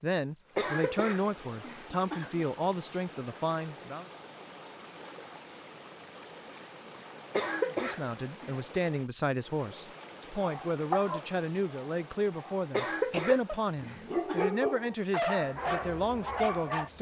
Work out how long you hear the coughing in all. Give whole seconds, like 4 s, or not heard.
5 s.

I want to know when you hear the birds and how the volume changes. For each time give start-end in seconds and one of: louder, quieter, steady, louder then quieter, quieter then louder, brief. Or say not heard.
not heard.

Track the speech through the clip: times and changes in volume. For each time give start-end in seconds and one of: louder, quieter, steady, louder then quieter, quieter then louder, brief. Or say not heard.
0.0-4.0 steady
7.7-16.9 steady.